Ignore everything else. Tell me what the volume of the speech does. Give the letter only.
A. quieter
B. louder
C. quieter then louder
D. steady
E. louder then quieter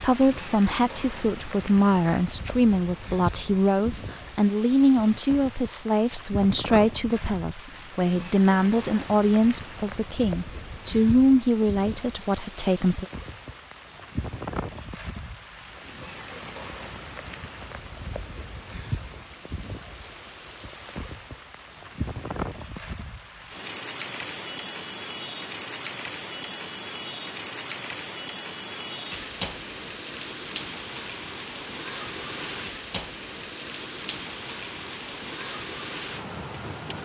D.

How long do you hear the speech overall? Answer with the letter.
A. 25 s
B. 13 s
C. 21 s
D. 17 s
B.